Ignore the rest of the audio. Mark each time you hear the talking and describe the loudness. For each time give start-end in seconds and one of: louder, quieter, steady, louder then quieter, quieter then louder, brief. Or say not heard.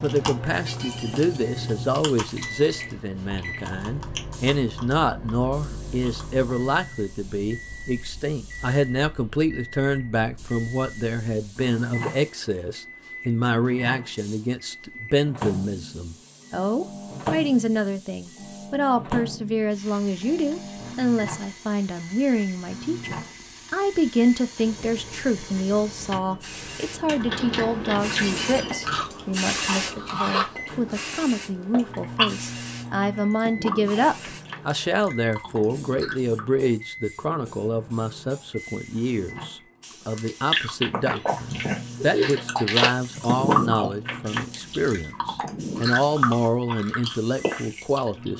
0.0-48.3 steady.